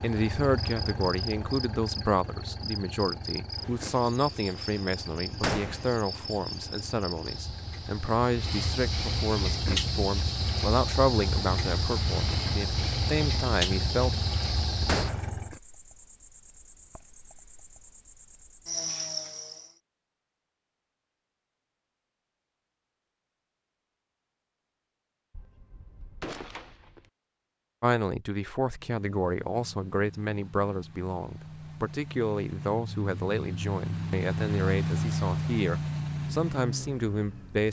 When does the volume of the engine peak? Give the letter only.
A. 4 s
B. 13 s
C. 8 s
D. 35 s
D.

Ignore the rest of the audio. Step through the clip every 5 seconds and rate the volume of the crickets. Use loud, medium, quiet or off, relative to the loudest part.
medium, loud, loud, medium, off, off, off, off.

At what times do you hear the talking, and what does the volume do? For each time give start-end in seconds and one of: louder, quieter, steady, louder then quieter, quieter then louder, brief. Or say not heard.
0.0-14.1 steady
27.8-37.6 steady.